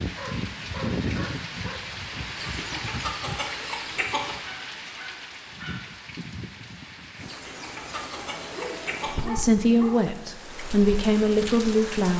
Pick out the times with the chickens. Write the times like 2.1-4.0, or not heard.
2.4-4.4, 7.2-9.2.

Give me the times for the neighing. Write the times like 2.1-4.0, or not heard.
not heard.